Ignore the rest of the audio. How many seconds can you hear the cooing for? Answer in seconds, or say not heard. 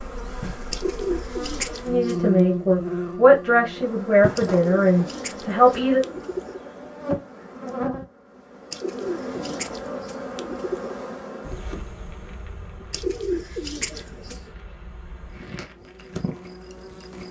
8 s.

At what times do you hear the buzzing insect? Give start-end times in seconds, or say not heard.
0.0-17.2.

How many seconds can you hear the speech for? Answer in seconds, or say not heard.
4 s.